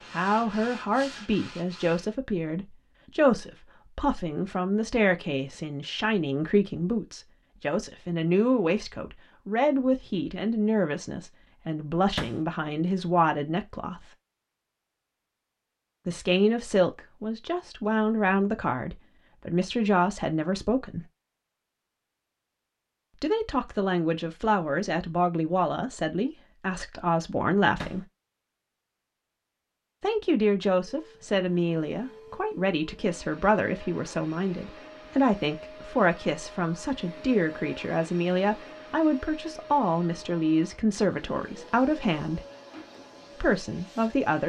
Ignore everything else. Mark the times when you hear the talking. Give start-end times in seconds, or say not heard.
0.1-14.1, 16.1-21.1, 23.2-28.1, 30.0-42.5, 43.4-44.4.